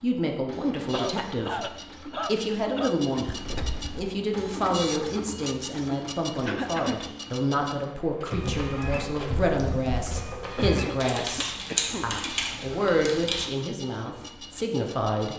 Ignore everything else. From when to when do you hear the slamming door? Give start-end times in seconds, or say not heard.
3.2-4.2.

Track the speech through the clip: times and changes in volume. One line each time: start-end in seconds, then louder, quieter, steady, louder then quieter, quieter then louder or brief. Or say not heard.
0.0-15.3 steady.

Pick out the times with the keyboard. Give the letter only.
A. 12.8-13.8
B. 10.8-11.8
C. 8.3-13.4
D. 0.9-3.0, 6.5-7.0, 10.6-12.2
C.